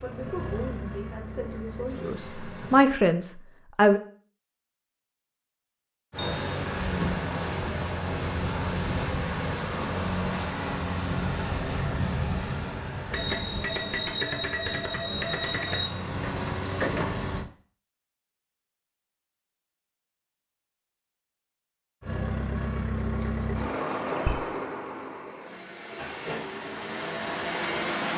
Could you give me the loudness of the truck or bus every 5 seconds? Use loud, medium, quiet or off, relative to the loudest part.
medium, loud, loud, loud, loud, loud.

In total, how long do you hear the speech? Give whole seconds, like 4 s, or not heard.
4 s.